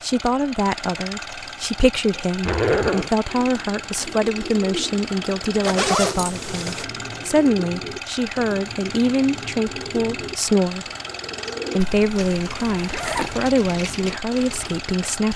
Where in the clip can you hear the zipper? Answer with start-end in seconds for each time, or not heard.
2.5-3.1, 5.6-6.8, 11.8-13.4.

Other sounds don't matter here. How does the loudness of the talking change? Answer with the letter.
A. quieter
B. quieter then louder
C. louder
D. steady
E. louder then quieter
D.